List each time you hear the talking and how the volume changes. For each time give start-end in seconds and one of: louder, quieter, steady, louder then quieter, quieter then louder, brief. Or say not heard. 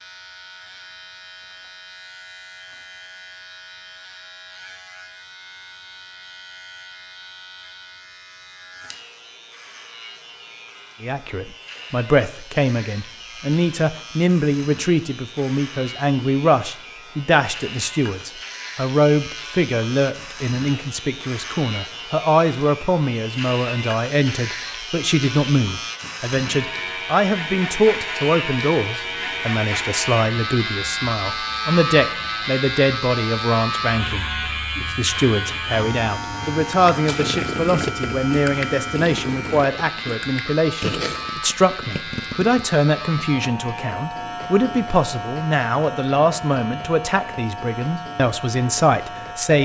11.0-49.6 steady.